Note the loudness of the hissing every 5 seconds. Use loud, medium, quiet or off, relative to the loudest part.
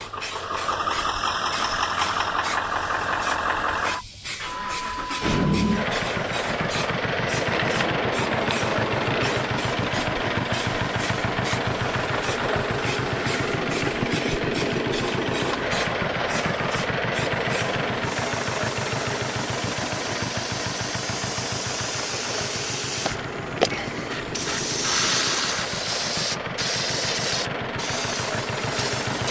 medium, medium, medium, medium, loud, loud.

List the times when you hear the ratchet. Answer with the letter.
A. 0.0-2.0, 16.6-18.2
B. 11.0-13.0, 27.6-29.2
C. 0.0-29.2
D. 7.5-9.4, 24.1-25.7
D.